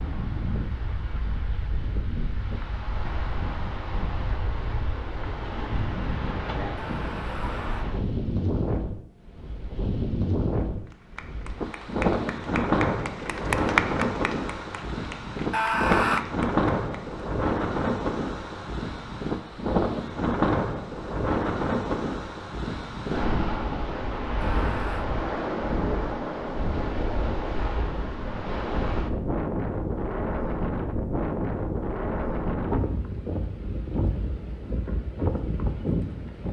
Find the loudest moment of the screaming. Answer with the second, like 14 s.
16 s.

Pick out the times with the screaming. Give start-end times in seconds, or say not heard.
6.8-7.9, 15.5-16.2, 24.6-25.1.